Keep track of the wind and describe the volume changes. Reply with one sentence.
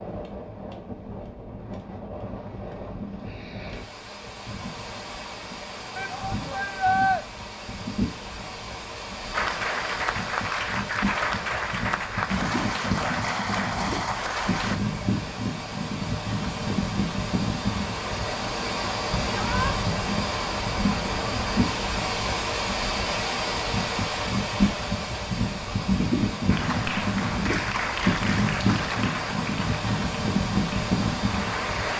The loudness of the wind goes up.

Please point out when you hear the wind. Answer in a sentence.
The wind can be heard from 0.0 to 31.9 s.